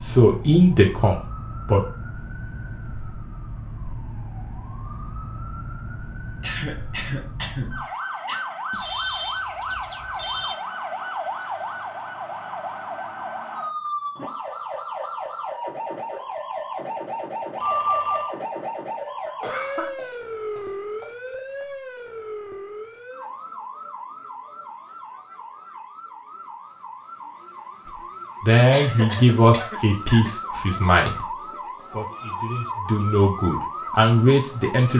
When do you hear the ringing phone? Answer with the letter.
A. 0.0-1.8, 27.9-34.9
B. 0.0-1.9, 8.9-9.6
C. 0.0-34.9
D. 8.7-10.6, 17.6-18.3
D.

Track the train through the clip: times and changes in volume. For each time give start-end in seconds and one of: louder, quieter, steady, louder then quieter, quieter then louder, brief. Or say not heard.
not heard.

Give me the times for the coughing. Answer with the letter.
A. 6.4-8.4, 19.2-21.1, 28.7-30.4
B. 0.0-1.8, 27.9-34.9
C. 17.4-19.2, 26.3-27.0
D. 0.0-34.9
A.